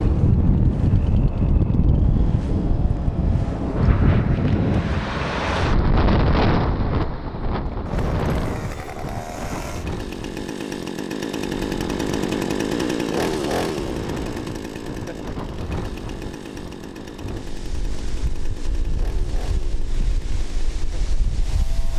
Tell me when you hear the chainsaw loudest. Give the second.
13 s.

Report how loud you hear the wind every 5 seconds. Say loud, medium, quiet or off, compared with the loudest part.
loud, loud, quiet, quiet, quiet.